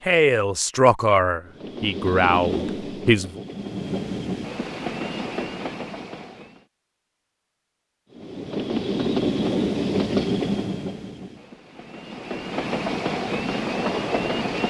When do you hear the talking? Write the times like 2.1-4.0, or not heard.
0.1-3.4.